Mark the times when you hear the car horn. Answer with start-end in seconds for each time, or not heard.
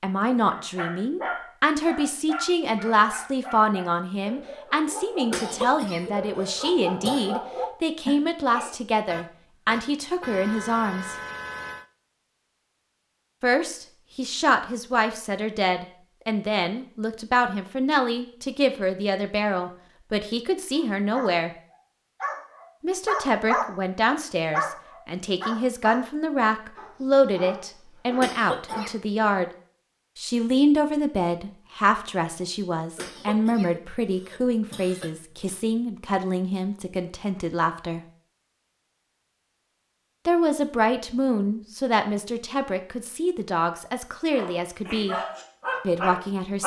9.1-11.8.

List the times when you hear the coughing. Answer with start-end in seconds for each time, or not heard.
5.3-7.4, 28.2-28.9, 33.0-35.5.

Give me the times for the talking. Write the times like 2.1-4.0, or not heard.
0.0-11.2, 13.4-21.5, 22.8-29.5, 30.1-38.0, 40.2-45.1, 45.8-46.6.